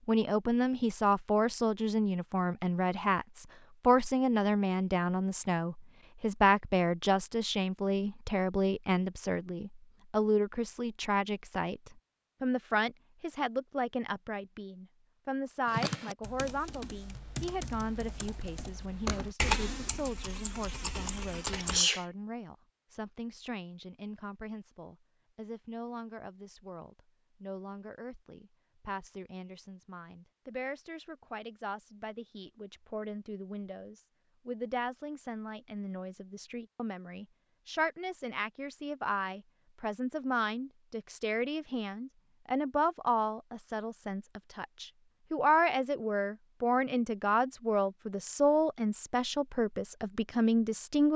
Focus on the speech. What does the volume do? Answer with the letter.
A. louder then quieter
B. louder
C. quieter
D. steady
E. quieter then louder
E.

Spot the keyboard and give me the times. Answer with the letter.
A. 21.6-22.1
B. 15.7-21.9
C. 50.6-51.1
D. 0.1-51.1
B.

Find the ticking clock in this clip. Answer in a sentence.
The ticking clock can't be heard in this clip.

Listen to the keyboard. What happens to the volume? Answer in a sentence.
The volume of the keyboard goes up, then down.